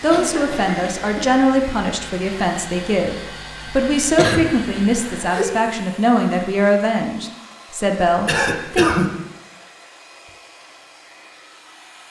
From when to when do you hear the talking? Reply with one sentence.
The talking can be heard from 0.0 to 8.8 s.